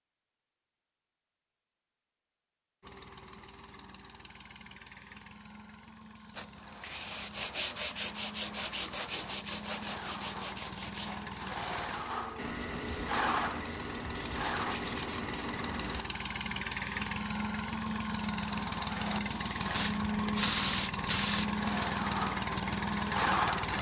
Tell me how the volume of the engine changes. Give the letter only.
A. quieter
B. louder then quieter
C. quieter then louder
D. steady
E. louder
E.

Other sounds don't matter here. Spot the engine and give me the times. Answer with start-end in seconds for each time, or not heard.
2.8-23.7.